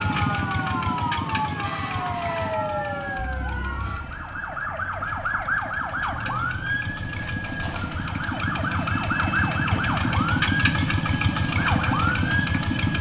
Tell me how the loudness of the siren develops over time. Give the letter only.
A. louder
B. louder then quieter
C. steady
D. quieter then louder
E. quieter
C.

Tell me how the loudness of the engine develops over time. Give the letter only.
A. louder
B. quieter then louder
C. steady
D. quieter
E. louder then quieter
B.